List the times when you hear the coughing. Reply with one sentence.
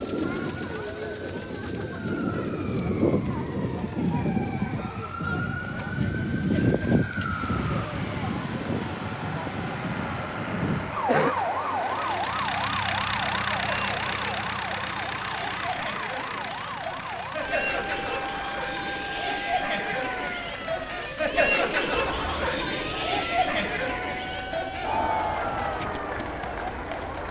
You can hear the coughing from 11.1 to 11.5 s.